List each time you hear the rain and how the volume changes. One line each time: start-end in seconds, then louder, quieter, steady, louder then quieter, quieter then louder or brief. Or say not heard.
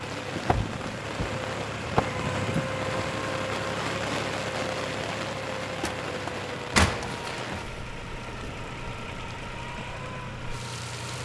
0.0-11.2 quieter.